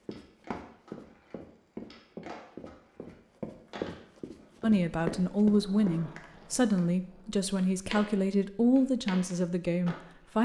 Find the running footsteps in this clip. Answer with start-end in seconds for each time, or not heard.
0.1-6.0.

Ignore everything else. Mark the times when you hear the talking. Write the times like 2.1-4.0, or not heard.
4.6-10.4.